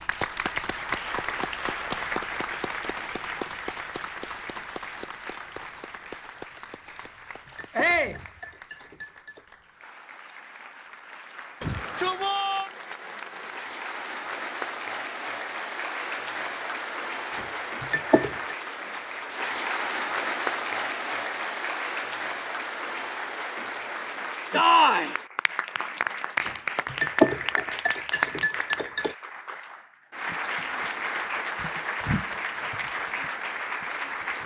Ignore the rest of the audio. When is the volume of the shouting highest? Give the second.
25 s.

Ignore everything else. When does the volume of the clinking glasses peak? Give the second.
27 s.